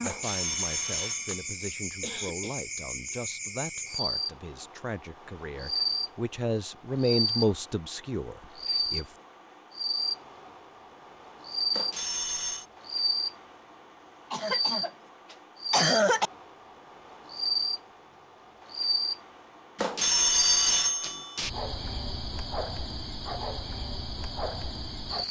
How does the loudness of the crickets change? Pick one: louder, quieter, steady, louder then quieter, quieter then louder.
steady.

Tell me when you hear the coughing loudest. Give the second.
16 s.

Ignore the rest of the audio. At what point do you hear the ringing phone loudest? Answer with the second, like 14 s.
20 s.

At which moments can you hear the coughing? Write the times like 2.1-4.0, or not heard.
2.0-2.5, 14.3-16.3.